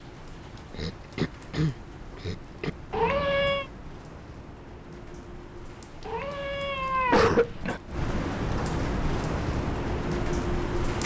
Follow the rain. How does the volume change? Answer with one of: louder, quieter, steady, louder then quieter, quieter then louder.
louder.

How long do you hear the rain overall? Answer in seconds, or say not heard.
11 s.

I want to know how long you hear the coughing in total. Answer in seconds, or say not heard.
3 s.